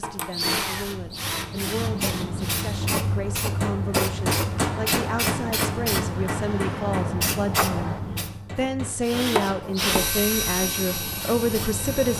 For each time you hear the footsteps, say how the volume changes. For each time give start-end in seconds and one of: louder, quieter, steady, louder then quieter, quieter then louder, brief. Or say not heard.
not heard.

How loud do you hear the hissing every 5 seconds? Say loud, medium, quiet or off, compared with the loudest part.
loud, loud, medium.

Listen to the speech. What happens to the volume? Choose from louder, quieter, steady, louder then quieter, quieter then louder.
louder.